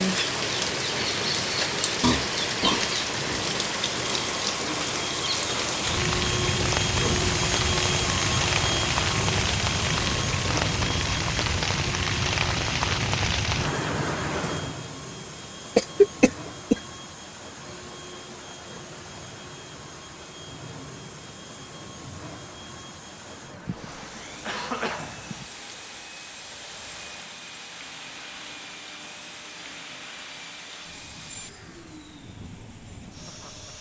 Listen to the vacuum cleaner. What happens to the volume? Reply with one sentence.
The volume of the vacuum cleaner goes down.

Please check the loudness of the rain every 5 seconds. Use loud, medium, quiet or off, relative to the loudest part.
loud, loud, loud, quiet, quiet, quiet, quiet.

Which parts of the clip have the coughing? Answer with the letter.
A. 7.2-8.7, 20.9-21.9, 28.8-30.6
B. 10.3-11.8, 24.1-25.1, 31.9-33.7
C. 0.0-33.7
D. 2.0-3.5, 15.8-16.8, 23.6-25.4
D.